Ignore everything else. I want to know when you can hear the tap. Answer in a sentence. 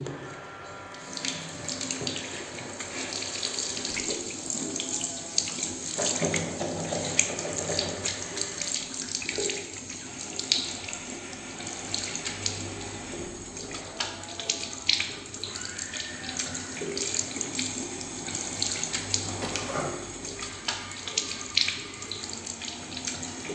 You can hear the tap from 0.0 to 23.4 s.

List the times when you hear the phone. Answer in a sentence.
You can hear the phone from 19.2 to 19.9 s.